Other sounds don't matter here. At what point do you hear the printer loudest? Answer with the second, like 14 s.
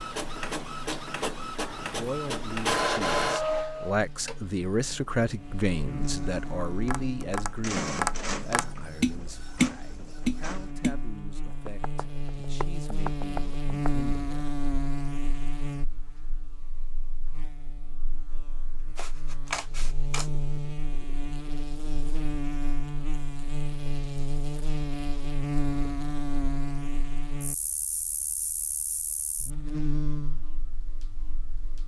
3 s.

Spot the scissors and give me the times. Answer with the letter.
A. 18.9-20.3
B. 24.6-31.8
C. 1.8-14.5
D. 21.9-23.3
A.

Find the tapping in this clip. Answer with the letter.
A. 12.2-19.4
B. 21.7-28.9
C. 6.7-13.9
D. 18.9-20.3
C.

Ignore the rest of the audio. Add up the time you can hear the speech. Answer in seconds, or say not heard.
13 s.